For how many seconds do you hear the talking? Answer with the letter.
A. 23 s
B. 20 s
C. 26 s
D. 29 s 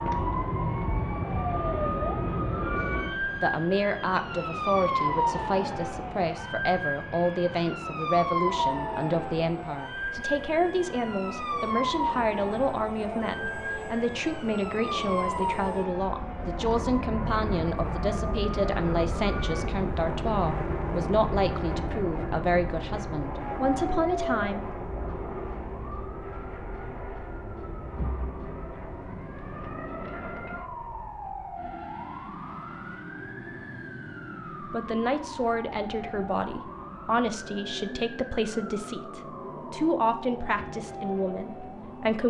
D.